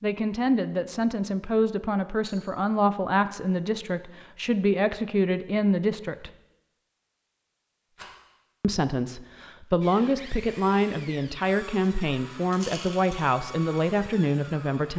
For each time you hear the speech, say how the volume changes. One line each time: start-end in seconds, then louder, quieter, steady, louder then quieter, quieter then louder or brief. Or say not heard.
0.0-6.3 steady
8.6-14.9 steady.